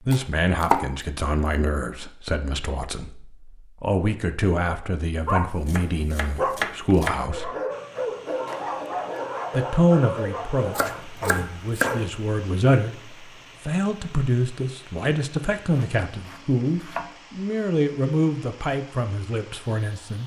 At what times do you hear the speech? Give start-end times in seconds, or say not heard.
0.1-7.5, 9.5-20.2.